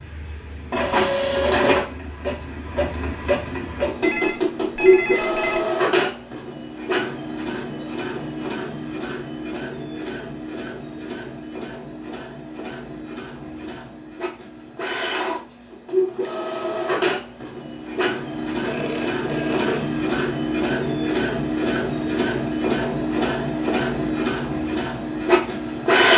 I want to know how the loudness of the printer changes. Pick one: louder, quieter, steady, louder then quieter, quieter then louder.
quieter then louder.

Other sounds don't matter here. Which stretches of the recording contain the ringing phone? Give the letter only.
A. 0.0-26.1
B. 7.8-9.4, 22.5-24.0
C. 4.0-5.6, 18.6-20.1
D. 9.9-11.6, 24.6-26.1
C.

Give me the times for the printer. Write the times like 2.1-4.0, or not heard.
0.0-26.1.